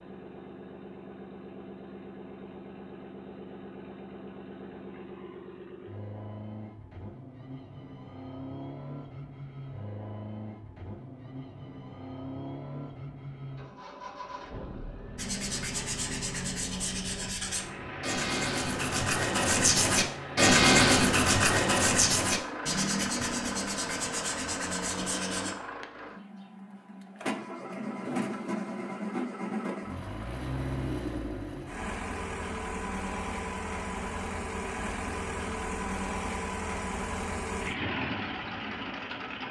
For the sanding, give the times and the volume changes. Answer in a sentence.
The sanding can be heard from 15.2 to 25.6 s, getting louder then quieter.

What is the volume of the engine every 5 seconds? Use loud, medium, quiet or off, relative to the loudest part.
medium, medium, medium, medium, loud, loud, loud, loud.